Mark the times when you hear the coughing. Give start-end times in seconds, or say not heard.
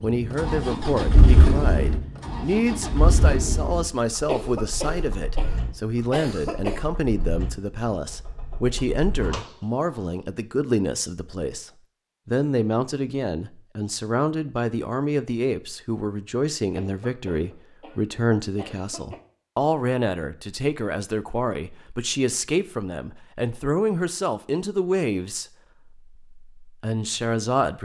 4.2-6.8, 16.7-19.2.